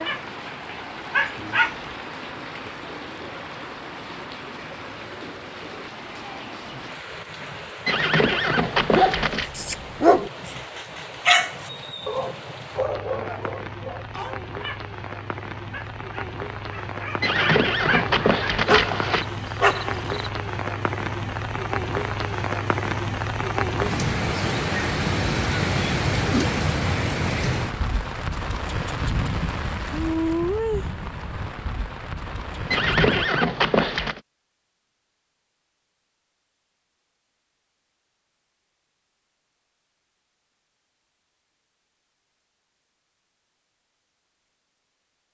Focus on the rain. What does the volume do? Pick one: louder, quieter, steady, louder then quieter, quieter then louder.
louder.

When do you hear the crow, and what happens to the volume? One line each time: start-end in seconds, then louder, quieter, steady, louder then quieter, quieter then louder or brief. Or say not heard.
not heard.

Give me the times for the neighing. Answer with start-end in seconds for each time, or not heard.
7.8-9.5, 17.2-19.2, 32.7-34.2.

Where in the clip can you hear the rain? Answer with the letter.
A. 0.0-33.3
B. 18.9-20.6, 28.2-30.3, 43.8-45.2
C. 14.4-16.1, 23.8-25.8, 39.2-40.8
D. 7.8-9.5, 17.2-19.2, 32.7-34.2
A.